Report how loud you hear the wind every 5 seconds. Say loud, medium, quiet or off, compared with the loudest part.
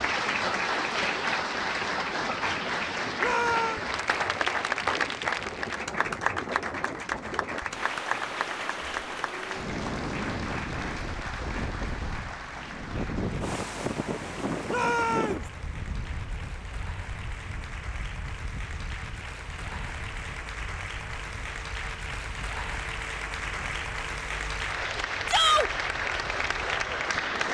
medium, loud, loud, medium, quiet, quiet.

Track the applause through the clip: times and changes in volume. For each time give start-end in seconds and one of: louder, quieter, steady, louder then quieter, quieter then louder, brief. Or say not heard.
0.0-27.5 quieter then louder.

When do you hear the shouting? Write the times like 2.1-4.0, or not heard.
3.2-3.8, 14.7-15.4, 25.2-25.7.